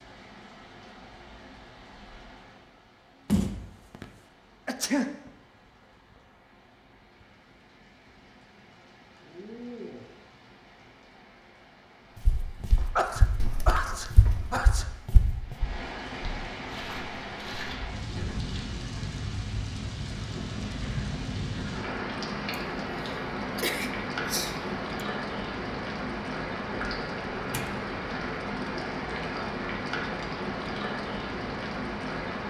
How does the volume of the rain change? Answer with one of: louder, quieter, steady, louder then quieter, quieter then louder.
louder.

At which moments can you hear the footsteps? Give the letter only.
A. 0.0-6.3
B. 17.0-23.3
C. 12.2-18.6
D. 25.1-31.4
C.